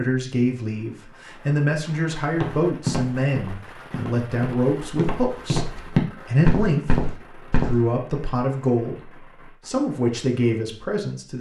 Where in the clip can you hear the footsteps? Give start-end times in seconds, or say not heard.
2.4-7.8.